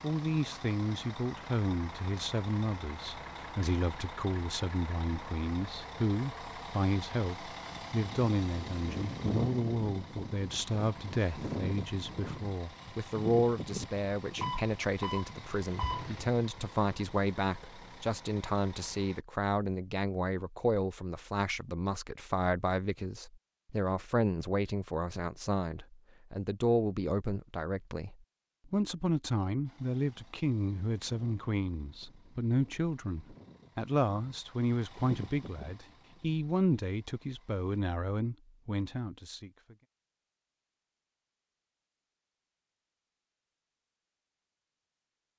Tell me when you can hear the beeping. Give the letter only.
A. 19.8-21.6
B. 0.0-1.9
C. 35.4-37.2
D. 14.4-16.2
D.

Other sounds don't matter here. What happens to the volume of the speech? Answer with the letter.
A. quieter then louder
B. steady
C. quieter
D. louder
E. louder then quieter
B.